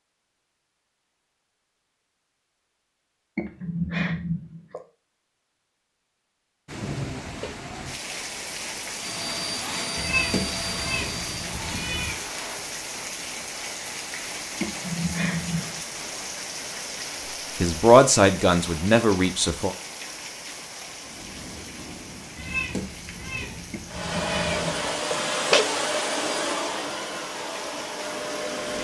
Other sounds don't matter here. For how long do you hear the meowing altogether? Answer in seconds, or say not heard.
5 s.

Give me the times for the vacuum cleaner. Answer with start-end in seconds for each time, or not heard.
8.9-12.7, 23.9-28.7.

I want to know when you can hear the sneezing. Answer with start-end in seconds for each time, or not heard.
3.4-4.8, 14.6-15.8, 23.7-25.6.